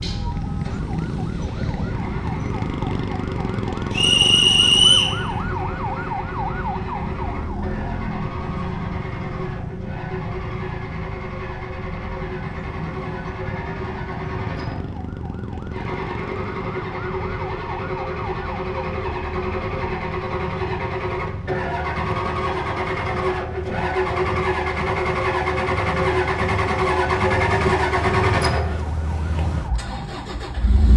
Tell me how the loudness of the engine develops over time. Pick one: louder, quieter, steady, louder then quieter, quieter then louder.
louder.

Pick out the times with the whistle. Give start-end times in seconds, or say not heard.
3.9-5.2.